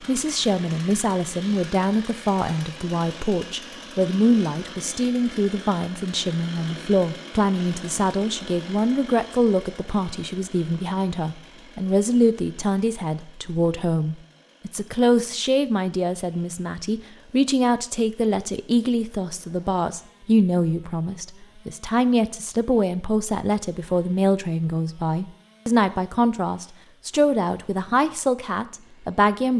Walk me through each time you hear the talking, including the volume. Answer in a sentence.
You can hear the talking from 0.1 to 29.5 s, at a steady volume.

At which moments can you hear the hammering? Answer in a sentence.
The hammering can't be heard in this clip.